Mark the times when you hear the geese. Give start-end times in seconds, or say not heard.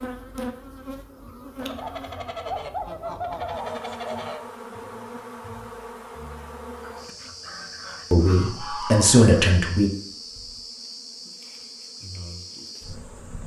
1.6-4.4, 6.8-9.2.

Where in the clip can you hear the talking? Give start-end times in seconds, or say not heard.
8.1-9.9.